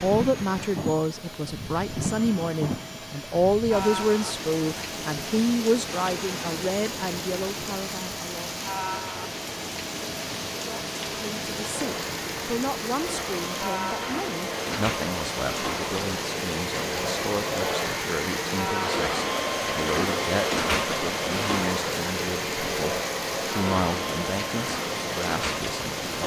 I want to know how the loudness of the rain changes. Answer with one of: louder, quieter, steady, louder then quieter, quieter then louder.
steady.